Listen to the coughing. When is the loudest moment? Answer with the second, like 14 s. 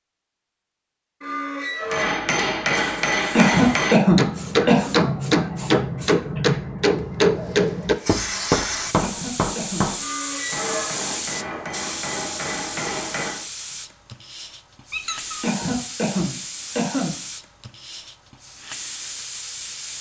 4 s.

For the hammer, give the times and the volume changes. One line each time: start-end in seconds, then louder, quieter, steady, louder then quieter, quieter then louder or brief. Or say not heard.
1.9-13.4 quieter.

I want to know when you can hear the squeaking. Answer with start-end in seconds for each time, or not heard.
1.2-2.1, 9.9-10.9, 14.9-15.4.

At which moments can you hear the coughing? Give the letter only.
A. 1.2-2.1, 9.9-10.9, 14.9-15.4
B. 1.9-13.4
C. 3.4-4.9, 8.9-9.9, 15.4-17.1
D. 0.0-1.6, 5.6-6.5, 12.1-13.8
C.